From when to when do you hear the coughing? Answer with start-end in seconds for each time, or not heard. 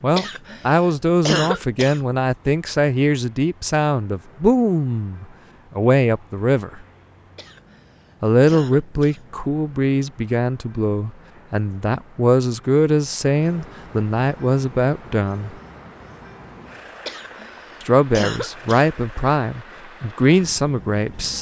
0.1-2.0, 7.3-9.2, 17.1-18.9.